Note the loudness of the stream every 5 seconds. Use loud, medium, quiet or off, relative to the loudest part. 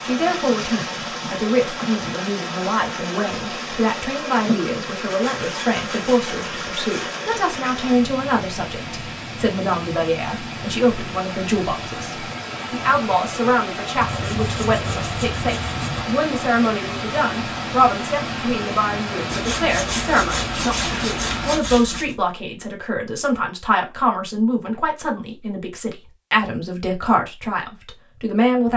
loud, loud, loud, loud, loud, off.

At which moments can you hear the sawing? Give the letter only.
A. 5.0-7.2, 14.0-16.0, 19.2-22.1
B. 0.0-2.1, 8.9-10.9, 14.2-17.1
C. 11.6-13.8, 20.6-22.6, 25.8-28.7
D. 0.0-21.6
A.